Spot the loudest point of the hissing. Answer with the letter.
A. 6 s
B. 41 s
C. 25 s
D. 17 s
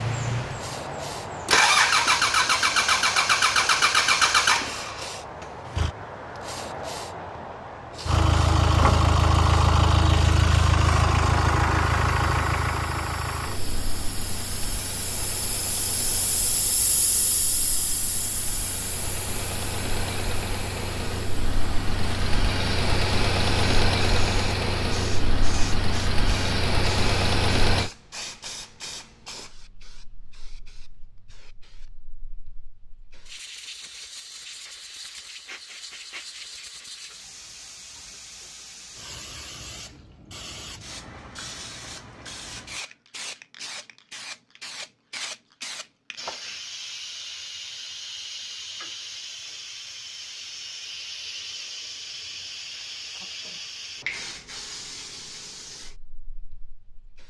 D.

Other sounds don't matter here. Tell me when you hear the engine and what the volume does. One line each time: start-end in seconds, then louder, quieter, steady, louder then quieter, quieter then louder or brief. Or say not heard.
0.0-5.9 louder then quieter
8.1-27.9 quieter then louder.